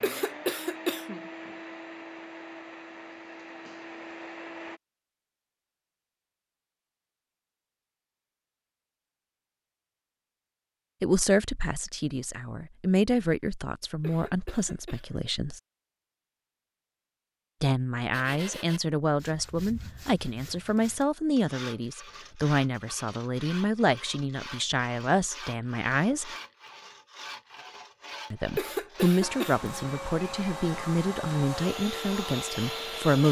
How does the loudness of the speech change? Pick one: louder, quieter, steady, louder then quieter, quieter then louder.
steady.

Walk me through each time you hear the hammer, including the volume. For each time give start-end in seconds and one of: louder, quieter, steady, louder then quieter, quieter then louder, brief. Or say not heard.
not heard.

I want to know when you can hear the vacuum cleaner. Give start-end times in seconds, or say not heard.
0.0-4.8, 29.2-33.2.